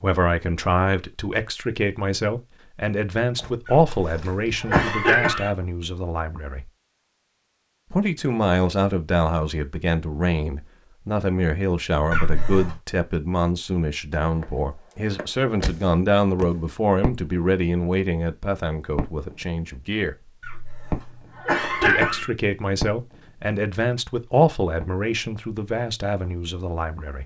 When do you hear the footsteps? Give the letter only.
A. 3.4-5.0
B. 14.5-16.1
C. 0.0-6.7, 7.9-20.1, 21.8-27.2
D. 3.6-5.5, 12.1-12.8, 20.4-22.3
A.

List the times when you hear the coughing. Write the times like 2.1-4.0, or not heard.
3.6-5.5, 12.1-12.8, 20.4-22.3.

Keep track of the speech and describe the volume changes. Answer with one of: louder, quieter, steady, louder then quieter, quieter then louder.
steady.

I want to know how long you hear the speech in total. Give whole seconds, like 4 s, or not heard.
24 s.